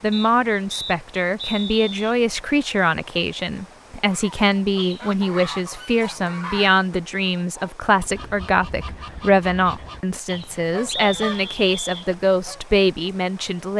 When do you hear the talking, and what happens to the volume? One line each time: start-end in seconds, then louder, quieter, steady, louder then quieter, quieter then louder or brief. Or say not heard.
0.0-13.7 steady.